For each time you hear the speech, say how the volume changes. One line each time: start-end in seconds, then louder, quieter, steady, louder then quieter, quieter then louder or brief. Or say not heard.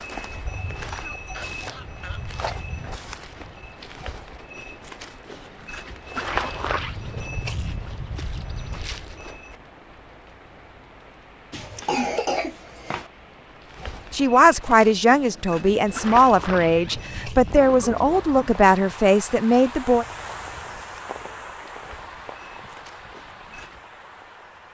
14.1-20.1 steady.